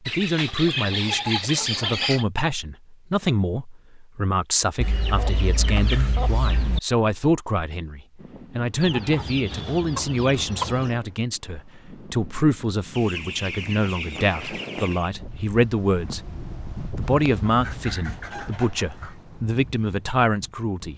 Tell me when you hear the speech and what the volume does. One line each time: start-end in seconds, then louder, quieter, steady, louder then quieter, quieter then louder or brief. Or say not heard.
0.0-20.9 steady.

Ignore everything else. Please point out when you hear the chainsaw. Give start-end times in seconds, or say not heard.
not heard.